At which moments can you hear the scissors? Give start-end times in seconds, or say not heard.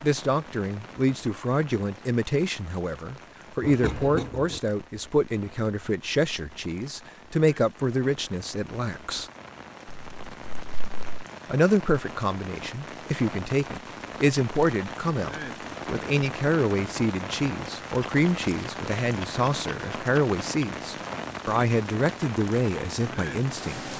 3.6-4.6, 9.8-11.0, 18.0-20.6.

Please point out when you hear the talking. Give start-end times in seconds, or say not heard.
0.0-9.3, 11.4-23.9.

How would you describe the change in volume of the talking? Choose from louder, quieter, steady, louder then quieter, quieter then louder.
steady.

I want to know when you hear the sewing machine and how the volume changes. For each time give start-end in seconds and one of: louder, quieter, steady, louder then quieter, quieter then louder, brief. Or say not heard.
not heard.